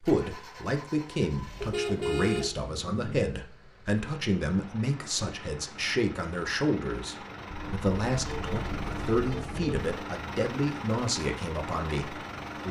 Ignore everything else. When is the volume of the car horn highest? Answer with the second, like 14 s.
2 s.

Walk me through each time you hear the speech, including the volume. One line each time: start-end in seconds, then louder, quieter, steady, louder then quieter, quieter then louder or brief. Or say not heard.
0.0-12.6 steady.